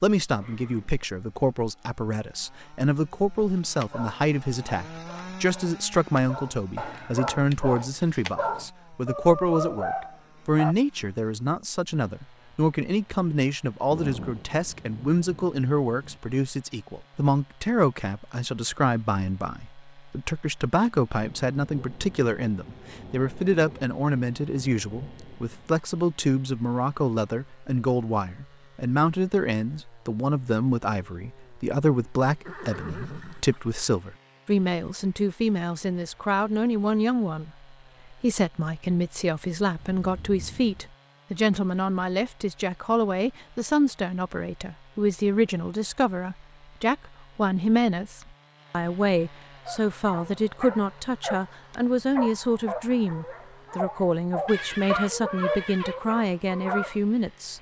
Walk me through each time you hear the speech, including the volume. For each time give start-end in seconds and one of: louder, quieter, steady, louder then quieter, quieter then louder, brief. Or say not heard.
0.0-57.5 steady.